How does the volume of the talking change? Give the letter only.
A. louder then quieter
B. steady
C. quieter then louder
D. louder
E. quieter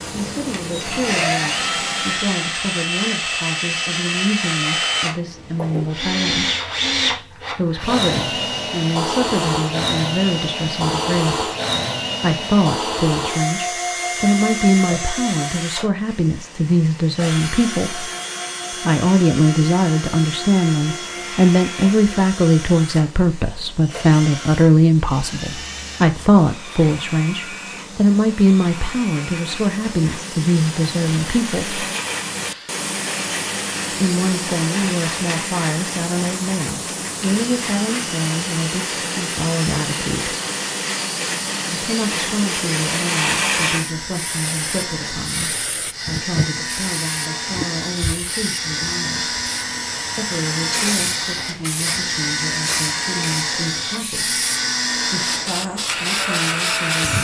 A.